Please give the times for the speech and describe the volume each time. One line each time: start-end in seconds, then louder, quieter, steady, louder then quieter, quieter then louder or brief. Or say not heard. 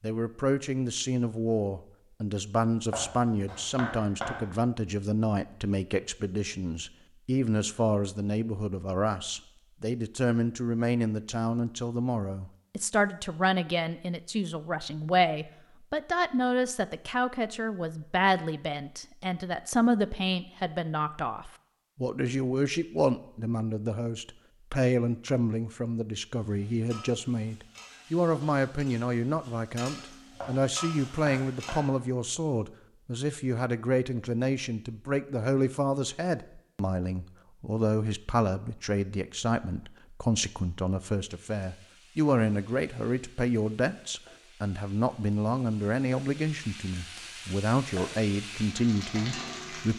0.0-49.9 steady.